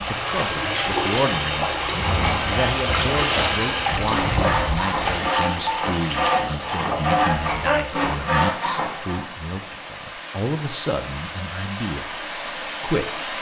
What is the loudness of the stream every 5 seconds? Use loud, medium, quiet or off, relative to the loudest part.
loud, medium, medium.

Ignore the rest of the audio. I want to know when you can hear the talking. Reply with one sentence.
You can hear the talking from 0.0 to 13.2 s.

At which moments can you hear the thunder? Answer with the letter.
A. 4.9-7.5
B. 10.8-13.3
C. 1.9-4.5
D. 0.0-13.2
C.